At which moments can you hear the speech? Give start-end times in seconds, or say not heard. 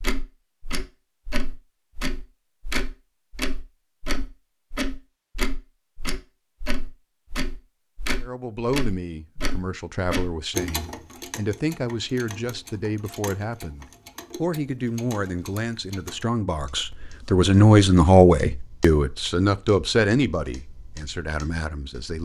8.2-22.1.